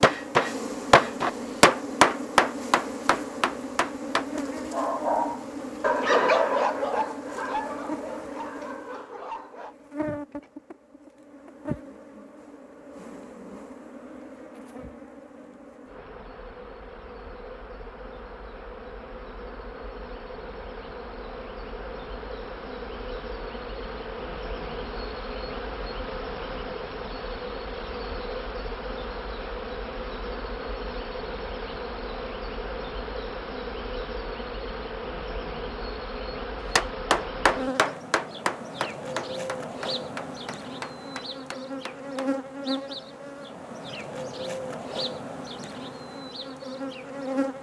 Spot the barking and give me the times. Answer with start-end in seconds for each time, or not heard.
4.7-9.8.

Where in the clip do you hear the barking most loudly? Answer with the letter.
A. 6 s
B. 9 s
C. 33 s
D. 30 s
A.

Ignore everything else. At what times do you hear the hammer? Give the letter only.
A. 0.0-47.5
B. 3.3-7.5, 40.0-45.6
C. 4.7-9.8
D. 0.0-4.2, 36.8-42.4
D.